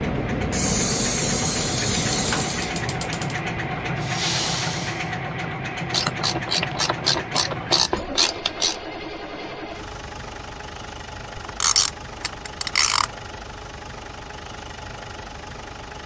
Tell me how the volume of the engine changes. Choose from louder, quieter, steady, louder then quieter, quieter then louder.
quieter.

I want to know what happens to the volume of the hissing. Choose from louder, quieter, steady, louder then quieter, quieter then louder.
quieter then louder.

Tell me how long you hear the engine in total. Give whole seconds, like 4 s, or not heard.
16 s.